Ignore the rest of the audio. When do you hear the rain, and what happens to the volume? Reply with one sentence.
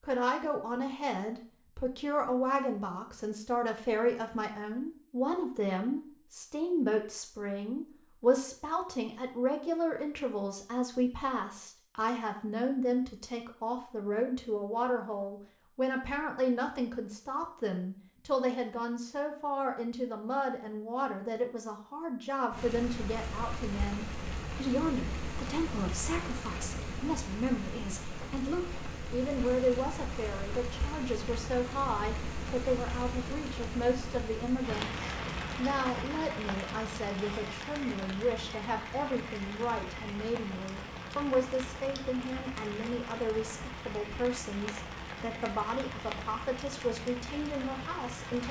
You can hear the rain from 22.5 to 48.4 s, at a steady volume.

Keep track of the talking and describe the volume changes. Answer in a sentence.
The loudness of the talking stays about the same.